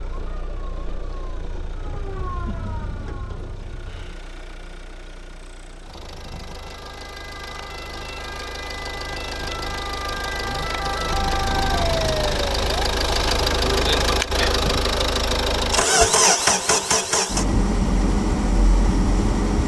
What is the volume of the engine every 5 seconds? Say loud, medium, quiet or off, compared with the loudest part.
quiet, quiet, loud, loud.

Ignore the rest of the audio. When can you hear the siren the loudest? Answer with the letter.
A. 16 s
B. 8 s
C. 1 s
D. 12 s
D.